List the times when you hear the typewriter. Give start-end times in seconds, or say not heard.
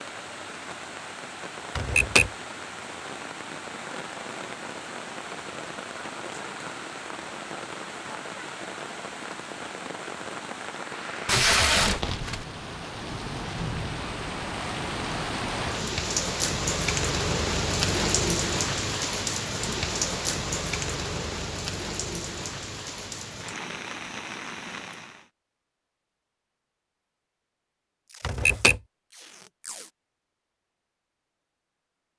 1.8-2.3, 28.2-28.8.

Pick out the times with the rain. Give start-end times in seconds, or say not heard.
0.0-25.3.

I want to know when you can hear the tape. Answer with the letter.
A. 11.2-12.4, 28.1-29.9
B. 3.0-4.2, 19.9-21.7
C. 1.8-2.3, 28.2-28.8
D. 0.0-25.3
A.